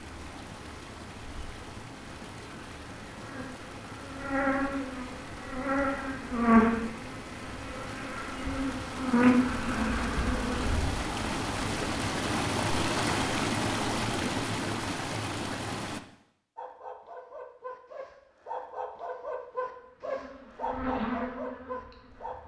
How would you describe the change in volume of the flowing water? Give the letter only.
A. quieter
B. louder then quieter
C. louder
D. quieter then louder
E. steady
C.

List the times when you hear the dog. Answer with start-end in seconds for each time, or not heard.
16.6-22.4.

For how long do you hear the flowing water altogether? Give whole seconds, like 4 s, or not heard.
16 s.